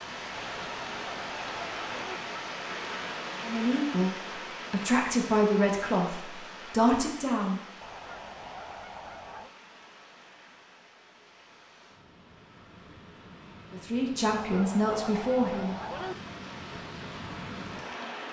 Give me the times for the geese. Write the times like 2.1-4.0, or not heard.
0.3-2.2, 7.8-9.5, 14.3-16.1.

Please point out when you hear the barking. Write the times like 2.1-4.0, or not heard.
not heard.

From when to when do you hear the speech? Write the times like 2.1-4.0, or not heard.
3.4-7.6, 13.7-15.8.